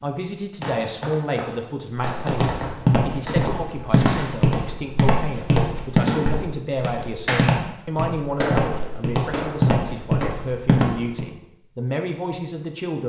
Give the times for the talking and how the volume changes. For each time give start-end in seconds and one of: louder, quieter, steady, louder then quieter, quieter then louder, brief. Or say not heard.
0.0-13.0 steady.